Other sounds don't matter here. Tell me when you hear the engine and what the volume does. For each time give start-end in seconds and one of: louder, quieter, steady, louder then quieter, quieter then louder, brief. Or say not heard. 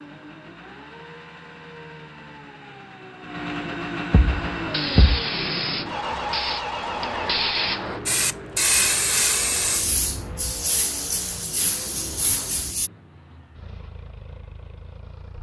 0.0-15.3 louder then quieter.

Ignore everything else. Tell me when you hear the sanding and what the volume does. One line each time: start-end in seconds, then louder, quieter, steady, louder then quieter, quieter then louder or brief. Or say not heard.
not heard.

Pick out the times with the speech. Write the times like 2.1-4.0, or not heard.
not heard.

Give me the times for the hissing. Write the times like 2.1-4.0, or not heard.
4.2-12.9.